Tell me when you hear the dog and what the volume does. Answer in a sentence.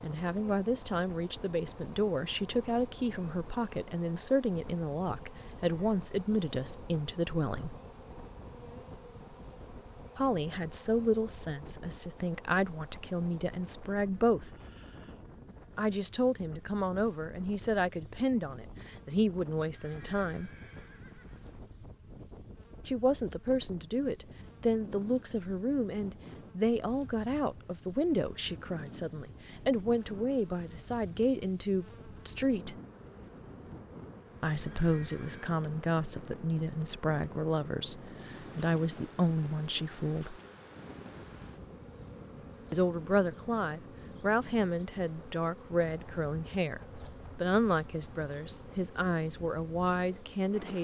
You can't hear the dog here.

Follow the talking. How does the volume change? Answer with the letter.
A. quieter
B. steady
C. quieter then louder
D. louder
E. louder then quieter
B.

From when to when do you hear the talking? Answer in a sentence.
The talking can be heard from 0.0 to 7.8 s, from 10.2 to 14.5 s, from 15.8 to 20.5 s, from 22.9 to 32.8 s, from 34.4 to 40.4 s and from 42.7 to 50.7 s.